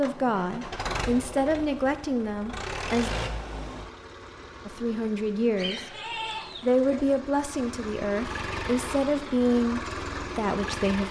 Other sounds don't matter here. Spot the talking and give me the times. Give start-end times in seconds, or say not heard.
0.0-3.1, 4.7-6.0, 6.6-11.0.